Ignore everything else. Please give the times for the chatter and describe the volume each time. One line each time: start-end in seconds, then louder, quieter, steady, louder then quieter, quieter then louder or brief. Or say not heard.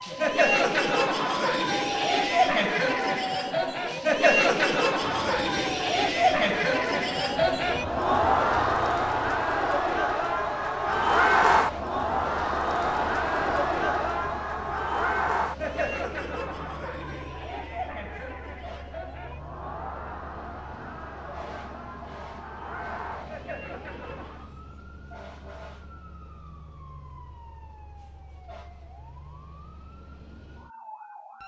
0.0-24.5 quieter.